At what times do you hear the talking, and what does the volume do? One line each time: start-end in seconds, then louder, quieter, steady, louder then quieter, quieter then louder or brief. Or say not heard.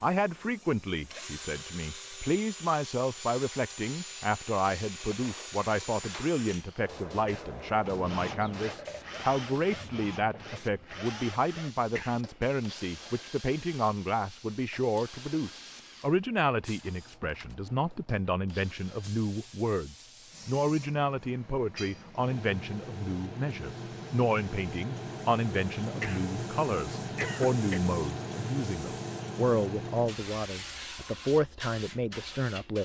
0.0-32.8 steady.